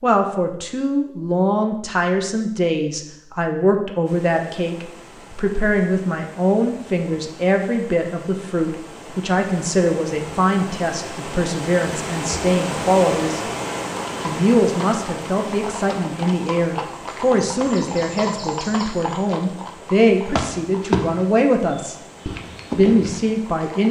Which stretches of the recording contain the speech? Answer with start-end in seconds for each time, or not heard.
0.0-13.4, 14.2-21.9, 22.8-23.8.